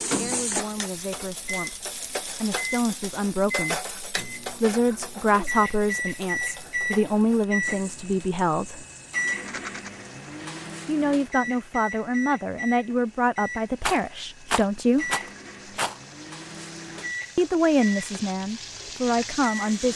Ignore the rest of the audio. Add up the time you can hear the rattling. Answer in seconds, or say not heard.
5 s.